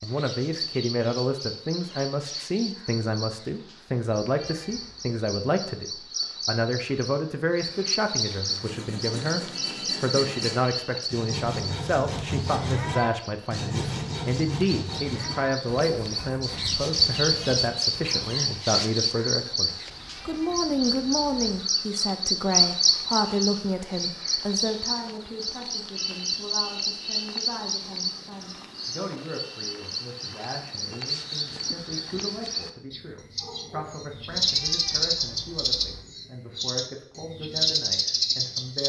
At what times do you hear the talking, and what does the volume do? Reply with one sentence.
The talking can be heard from 0.0 to 38.8 s, getting quieter.